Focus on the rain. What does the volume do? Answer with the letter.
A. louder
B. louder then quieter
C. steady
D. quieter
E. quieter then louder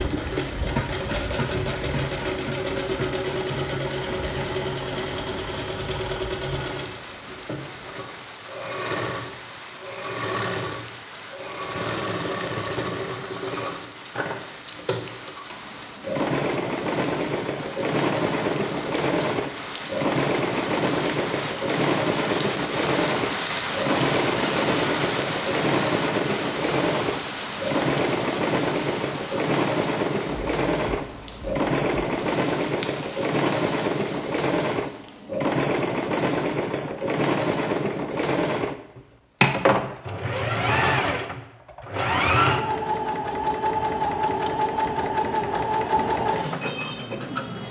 B.